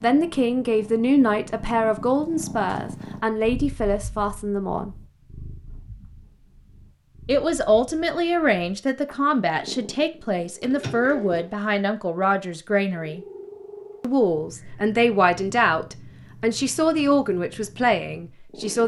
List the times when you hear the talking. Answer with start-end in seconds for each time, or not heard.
0.0-4.9, 7.2-13.2, 14.0-18.8.